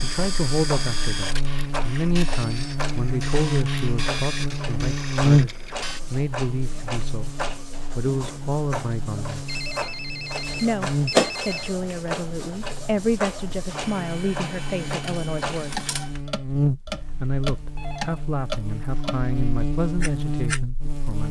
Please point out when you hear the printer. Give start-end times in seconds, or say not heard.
0.0-16.2.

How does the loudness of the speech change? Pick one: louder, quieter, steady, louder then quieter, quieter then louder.
steady.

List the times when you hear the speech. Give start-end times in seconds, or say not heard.
0.0-9.4, 10.6-15.8, 17.2-21.2.